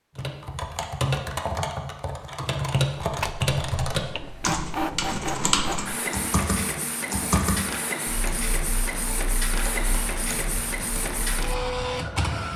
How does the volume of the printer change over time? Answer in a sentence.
The volume of the printer stays about the same.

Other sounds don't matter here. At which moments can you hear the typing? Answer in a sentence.
The typing can be heard from 0.1 to 11.6 s.